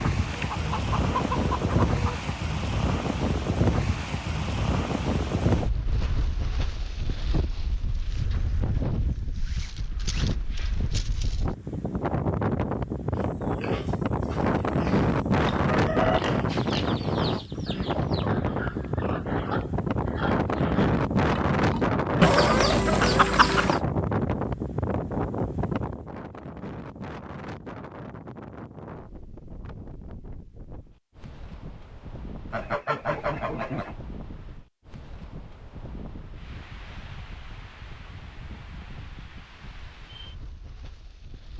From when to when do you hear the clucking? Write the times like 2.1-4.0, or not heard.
0.3-2.3, 15.7-18.3, 22.2-23.8, 32.5-34.0.